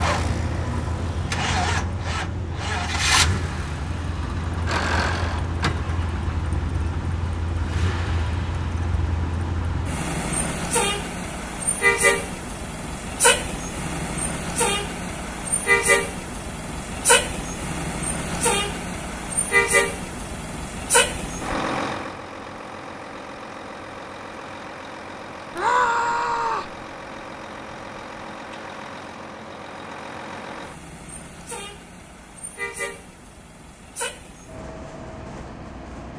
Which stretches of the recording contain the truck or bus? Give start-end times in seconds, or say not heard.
0.0-36.1.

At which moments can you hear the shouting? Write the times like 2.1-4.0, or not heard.
25.6-26.7.